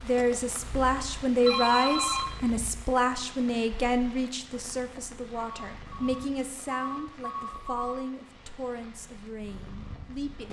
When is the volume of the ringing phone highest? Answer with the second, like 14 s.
2 s.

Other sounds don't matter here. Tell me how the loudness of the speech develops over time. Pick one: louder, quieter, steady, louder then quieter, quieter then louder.
quieter.